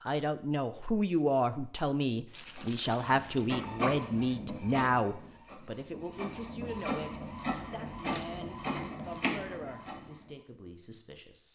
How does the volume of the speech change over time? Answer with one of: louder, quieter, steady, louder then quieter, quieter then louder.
quieter.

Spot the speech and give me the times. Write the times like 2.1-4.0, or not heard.
0.0-11.5.